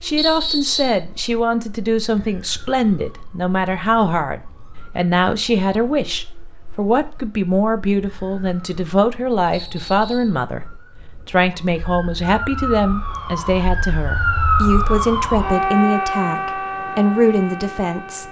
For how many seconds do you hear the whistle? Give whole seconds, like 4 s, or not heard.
2 s.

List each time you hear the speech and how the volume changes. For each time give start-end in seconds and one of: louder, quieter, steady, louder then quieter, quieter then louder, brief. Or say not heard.
0.0-18.2 steady.